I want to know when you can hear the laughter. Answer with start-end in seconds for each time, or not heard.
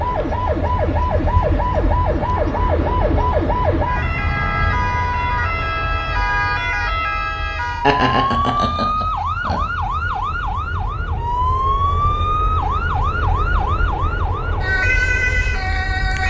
7.8-9.6.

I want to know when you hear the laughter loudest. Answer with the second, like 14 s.
8 s.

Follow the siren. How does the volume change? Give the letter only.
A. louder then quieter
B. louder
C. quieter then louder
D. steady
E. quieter
D.